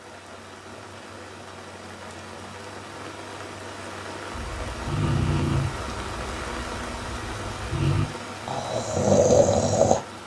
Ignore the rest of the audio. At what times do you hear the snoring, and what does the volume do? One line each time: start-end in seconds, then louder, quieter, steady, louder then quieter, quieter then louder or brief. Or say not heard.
4.3-10.0 quieter then louder.